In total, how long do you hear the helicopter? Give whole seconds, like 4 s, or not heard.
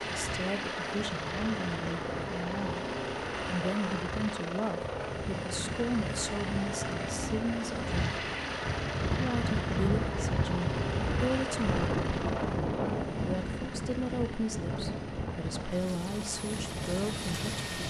18 s.